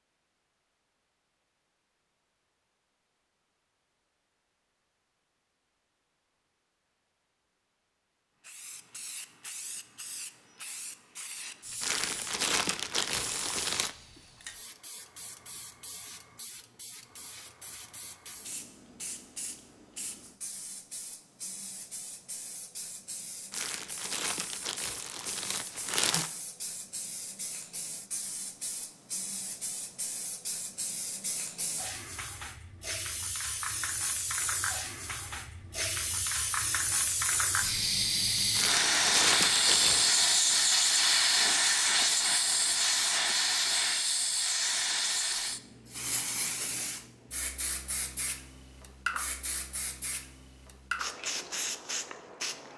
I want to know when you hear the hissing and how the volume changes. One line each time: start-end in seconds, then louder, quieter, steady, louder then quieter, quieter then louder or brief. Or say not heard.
8.4-52.7 louder then quieter.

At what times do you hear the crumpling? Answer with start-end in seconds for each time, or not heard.
11.8-13.9, 23.5-26.3, 38.5-40.2.